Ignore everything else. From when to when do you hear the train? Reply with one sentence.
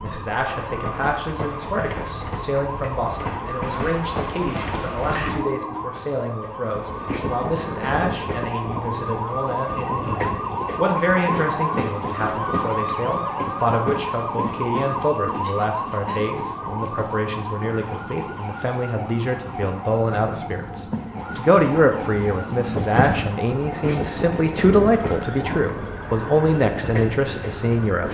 You can hear the train from 0.0 to 28.0 s.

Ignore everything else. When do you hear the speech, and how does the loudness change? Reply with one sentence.
You can hear the speech from 0.0 to 28.0 s, getting louder.